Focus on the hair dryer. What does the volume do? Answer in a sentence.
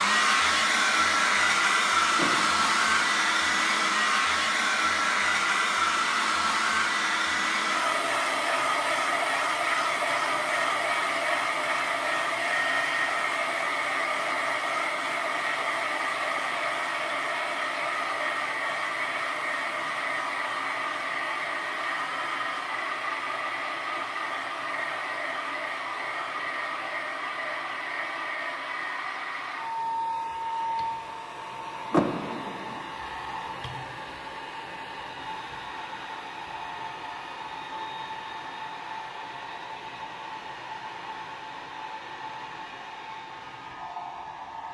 The volume of the hair dryer goes down.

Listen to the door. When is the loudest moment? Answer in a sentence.
The loudest moment of the door is at 32 seconds.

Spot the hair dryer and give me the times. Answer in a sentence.
The hair dryer can be heard from 0.0 to 44.6 s.